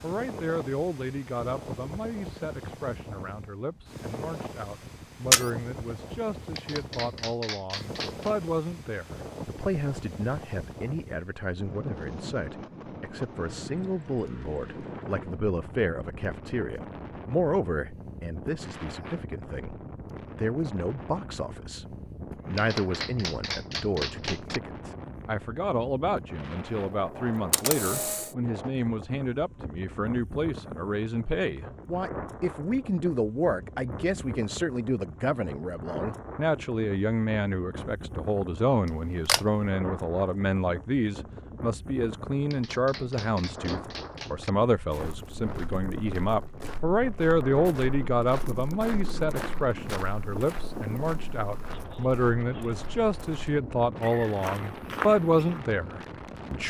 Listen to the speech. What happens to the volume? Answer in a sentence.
The loudness of the speech goes up.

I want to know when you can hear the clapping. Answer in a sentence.
You can hear the clapping from 6.5 to 8.3 s, from 22.6 to 24.6 s and from 42.5 to 44.5 s.